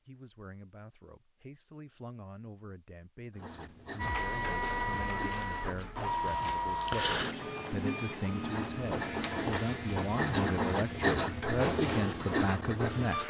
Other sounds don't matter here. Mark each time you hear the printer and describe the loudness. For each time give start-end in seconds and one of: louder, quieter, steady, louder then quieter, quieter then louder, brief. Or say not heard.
4.0-13.2 quieter.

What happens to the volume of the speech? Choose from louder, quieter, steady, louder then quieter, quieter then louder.
louder.